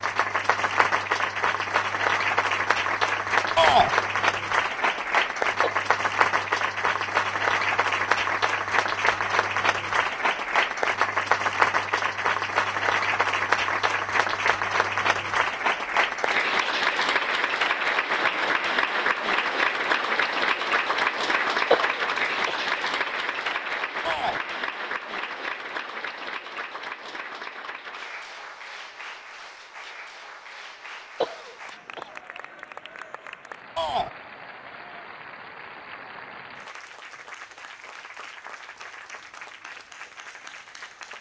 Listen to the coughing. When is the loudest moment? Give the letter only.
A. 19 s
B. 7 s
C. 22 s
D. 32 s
C.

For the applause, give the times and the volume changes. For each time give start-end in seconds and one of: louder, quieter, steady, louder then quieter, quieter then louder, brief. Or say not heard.
0.0-41.1 quieter.